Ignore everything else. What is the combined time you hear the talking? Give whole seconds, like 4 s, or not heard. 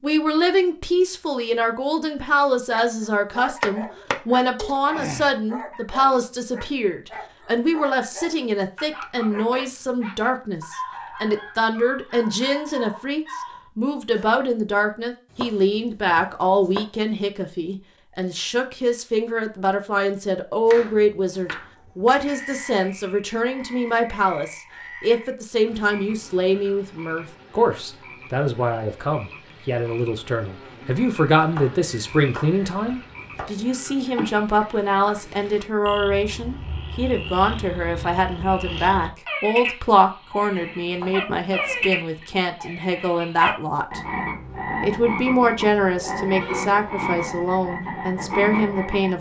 48 s.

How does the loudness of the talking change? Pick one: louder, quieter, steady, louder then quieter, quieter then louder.
steady.